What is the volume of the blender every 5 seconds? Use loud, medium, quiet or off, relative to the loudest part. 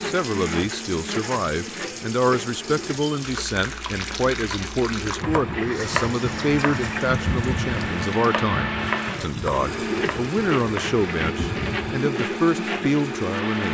medium, loud, loud.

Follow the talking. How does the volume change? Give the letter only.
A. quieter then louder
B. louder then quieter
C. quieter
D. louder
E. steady
E.